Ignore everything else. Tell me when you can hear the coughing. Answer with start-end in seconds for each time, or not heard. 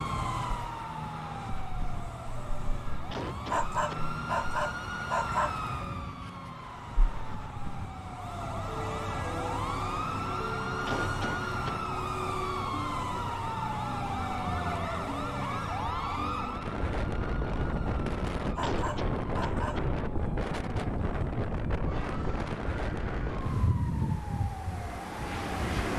3.1-4.1, 10.8-11.8, 18.6-19.9.